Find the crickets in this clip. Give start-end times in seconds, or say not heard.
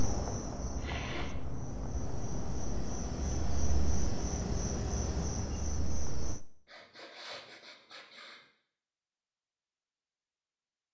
0.0-6.5.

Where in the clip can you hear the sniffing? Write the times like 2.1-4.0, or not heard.
0.8-1.4, 6.7-8.4.